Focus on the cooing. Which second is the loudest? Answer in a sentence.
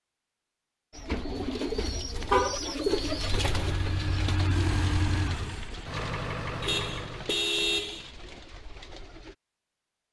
The loudest moment of the cooing is at 3 seconds.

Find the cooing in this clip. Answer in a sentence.
You can hear the cooing from 0.9 to 9.3 s.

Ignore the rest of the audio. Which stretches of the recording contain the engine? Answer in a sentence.
You can hear the engine from 3.0 to 7.4 s.